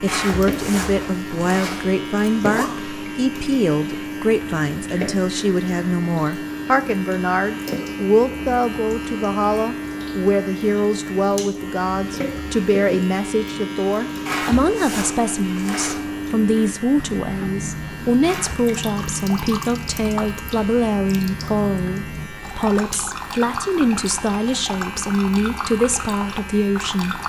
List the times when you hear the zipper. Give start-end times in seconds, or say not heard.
0.1-2.7, 14.2-16.2, 18.2-18.8.